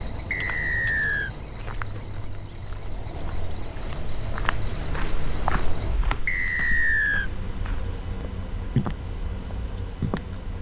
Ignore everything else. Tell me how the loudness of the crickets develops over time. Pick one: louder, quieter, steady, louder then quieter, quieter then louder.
louder.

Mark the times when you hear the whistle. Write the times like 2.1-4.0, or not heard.
0.3-1.3, 6.2-7.3.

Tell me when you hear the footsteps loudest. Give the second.
9 s.